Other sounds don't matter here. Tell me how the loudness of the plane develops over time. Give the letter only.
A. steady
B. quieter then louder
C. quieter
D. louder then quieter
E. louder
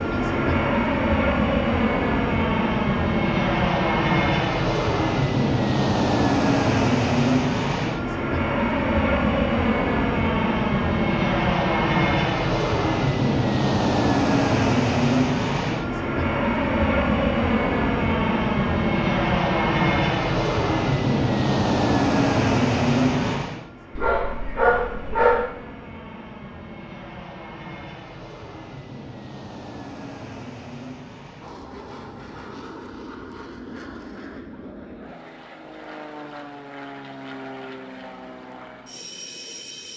C.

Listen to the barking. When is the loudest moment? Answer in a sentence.
The volume of the barking peaks at 25 seconds.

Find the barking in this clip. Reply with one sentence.
The barking can be heard from 23.9 to 25.5 s.